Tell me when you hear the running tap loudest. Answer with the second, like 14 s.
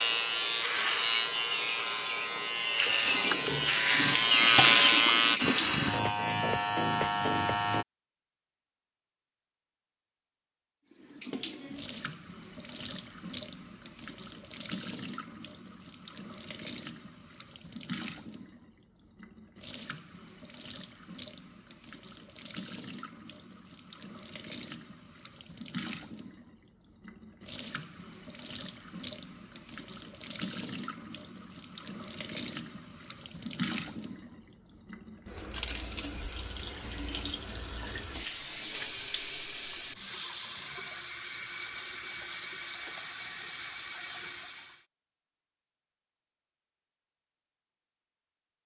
5 s.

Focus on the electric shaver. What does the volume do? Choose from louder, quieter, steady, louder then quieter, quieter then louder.
louder then quieter.